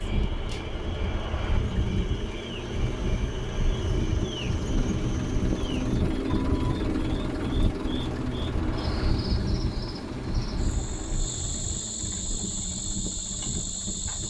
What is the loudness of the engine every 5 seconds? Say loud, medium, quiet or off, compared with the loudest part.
medium, loud, medium.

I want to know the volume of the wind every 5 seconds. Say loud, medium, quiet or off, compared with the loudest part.
loud, loud, medium.